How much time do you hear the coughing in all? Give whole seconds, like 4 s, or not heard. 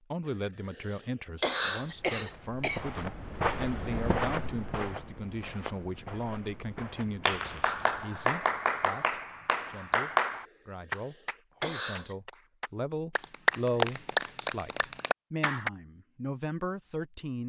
4 s.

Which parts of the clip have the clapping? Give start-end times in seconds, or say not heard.
6.8-15.7.